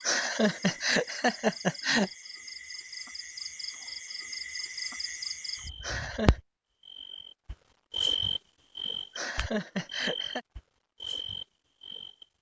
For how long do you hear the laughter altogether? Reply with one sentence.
You can hear the laughter for 4 seconds altogether.